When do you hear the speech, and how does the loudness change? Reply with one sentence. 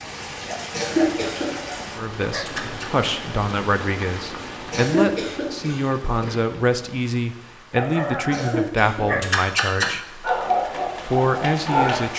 The speech can be heard from 1.9 to 10.2 s, at a steady volume; and briefly from 11.0 to 12.1 s.